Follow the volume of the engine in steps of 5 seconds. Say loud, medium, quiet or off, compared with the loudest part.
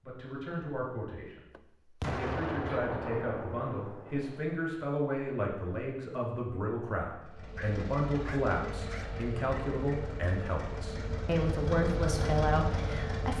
off, medium, loud.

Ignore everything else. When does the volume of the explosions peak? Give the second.
2 s.